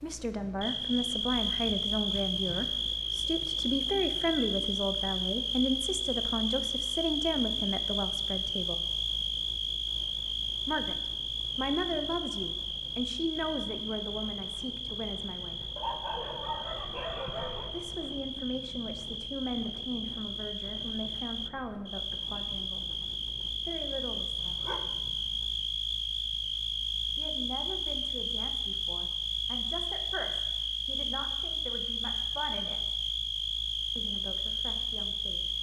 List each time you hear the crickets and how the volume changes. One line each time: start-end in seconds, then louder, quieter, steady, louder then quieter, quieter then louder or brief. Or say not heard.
0.0-35.5 quieter then louder.